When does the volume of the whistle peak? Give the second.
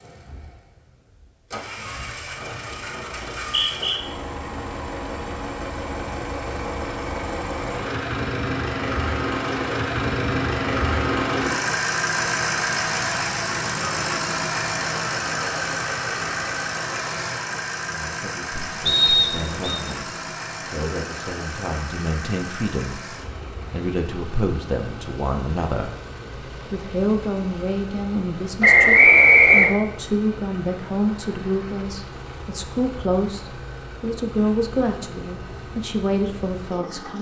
29 s.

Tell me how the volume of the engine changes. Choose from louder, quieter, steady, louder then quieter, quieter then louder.
louder then quieter.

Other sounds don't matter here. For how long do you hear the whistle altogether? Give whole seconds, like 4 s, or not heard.
3 s.